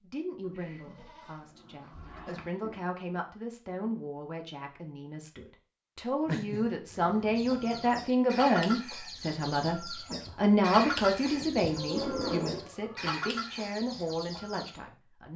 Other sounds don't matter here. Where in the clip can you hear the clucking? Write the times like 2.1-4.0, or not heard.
7.3-14.8.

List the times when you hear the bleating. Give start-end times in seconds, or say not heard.
0.4-2.4, 11.7-13.1.